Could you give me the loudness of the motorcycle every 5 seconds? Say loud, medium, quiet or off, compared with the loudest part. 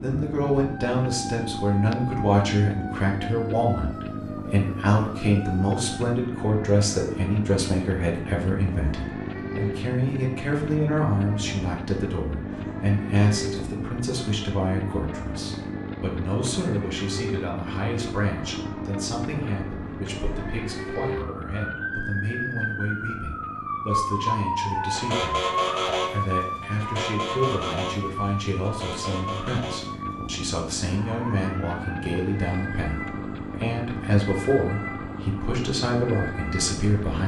loud, loud, loud, loud, medium, medium, loud, loud.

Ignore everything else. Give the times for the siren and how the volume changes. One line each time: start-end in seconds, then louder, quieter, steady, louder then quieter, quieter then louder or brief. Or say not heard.
0.1-37.0 louder then quieter.